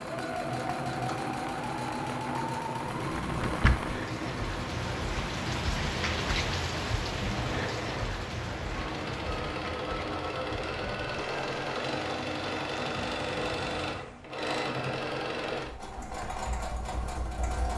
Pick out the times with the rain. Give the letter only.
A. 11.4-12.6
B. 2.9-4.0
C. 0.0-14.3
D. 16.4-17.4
C.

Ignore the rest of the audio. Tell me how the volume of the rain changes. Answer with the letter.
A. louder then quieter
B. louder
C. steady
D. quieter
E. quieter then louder
A.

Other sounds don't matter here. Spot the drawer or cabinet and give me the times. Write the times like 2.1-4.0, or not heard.
2.9-4.0.